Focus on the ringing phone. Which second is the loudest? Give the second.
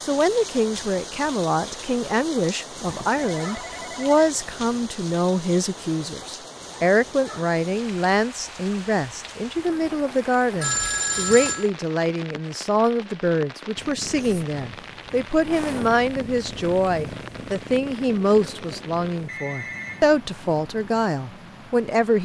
11 s.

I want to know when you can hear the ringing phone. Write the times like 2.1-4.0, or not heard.
2.9-4.8, 10.6-11.7, 19.2-20.1.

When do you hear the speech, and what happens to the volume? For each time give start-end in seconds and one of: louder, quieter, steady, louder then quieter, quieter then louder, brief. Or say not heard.
0.0-22.2 steady.